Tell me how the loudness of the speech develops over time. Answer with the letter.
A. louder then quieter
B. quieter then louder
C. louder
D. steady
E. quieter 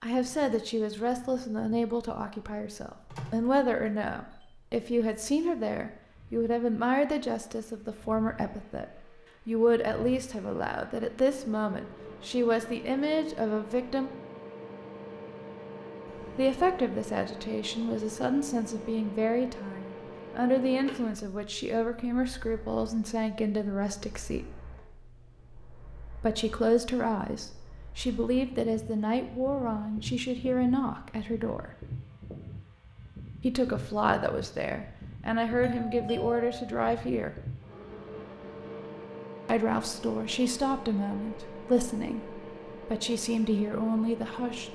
D.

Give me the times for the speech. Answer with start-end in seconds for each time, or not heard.
0.0-14.1, 16.4-24.4, 26.2-31.7, 33.4-37.4, 39.5-44.7.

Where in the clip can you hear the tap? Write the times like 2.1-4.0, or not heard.
not heard.